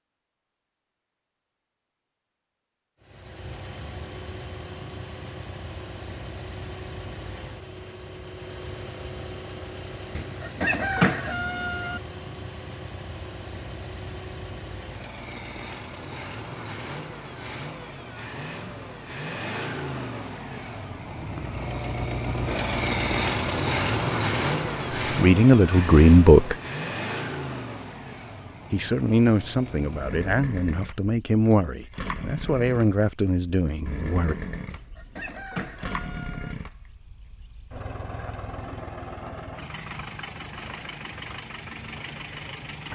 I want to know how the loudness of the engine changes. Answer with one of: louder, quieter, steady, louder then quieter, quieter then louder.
louder then quieter.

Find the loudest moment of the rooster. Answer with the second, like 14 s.
11 s.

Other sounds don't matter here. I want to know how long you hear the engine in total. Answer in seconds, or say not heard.
40 s.